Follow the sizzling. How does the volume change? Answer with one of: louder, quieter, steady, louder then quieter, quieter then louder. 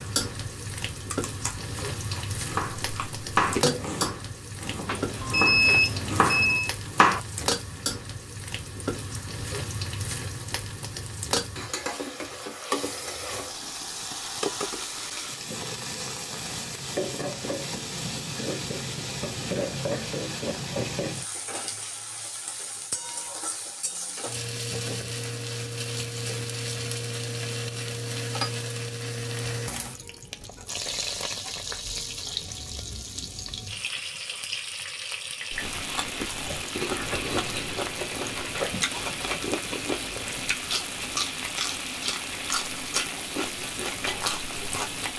steady.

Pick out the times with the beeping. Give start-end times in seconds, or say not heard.
4.8-6.7.